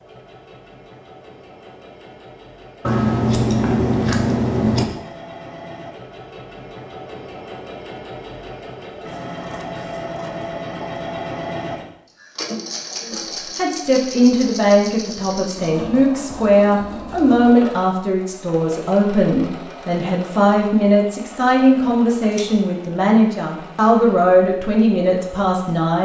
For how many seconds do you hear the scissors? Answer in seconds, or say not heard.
4 s.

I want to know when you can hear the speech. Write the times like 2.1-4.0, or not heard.
13.0-26.0.